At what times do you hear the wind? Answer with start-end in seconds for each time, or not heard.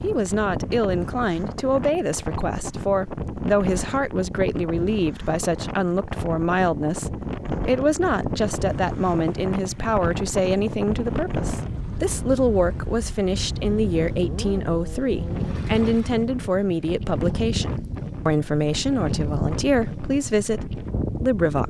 0.0-21.6.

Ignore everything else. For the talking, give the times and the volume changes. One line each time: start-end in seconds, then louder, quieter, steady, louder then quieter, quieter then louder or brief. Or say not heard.
0.0-21.6 steady.